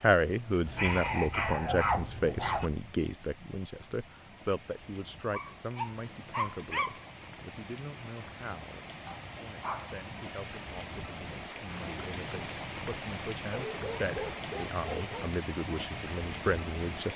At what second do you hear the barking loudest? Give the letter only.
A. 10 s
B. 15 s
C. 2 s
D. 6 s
C.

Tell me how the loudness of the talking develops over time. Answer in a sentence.
The volume of the talking goes down, then up.